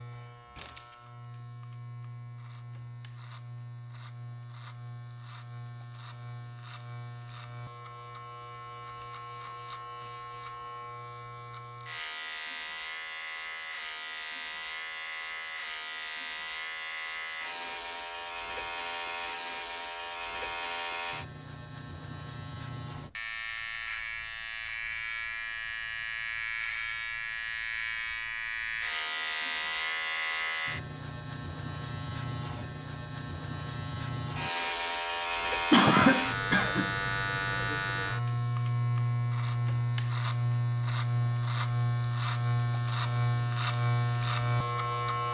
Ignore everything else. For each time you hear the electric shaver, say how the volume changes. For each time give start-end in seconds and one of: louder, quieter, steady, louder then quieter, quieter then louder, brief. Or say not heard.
0.0-45.2 louder.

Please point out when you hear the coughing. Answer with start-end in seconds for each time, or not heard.
35.7-37.0.